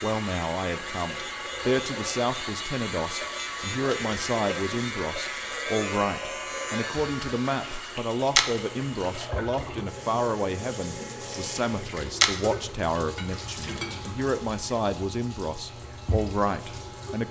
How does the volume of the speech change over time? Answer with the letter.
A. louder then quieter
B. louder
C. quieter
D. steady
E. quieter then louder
D.